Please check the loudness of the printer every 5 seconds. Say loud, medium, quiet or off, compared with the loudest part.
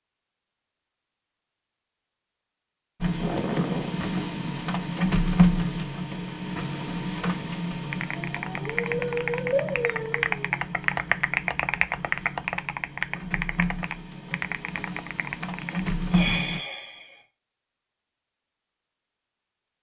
loud, loud, medium, loud.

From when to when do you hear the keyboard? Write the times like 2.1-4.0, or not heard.
7.9-15.9.